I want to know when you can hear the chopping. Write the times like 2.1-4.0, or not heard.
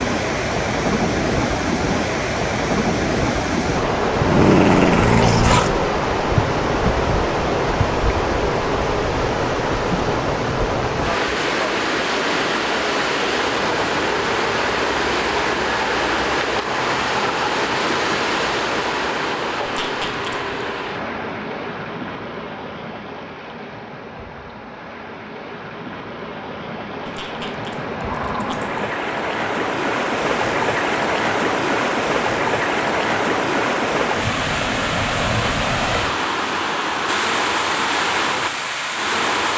not heard.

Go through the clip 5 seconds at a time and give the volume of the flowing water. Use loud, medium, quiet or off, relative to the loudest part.
loud, loud, loud, loud, medium, medium, loud, loud.